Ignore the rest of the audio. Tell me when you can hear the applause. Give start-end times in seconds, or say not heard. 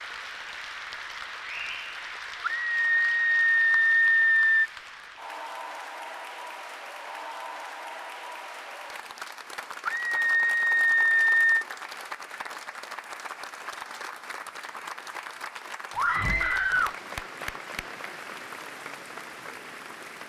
0.0-20.2.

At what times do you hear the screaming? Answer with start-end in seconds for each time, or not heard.
2.4-4.7, 9.8-11.7, 15.9-16.9.